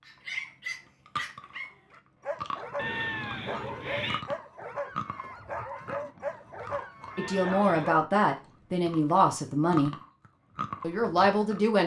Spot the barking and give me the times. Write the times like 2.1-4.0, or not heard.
0.1-8.1.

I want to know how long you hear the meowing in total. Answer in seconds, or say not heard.
2 s.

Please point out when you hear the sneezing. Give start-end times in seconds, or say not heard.
not heard.